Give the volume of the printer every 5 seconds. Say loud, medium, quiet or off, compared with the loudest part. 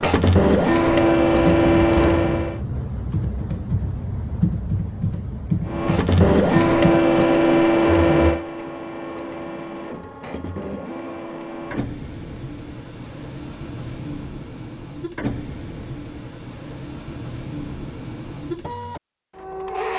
loud, loud, quiet, quiet.